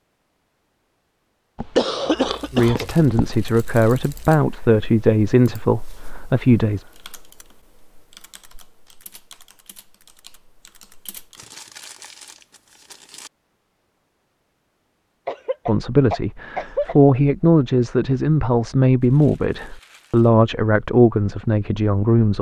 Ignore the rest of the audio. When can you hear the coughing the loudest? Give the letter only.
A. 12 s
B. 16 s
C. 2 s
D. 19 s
C.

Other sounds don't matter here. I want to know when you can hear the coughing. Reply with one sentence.
You can hear the coughing from 1.6 to 3.4 s and from 15.2 to 16.9 s.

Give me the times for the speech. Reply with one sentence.
You can hear the speech from 2.5 to 6.8 s and from 15.7 to 22.3 s.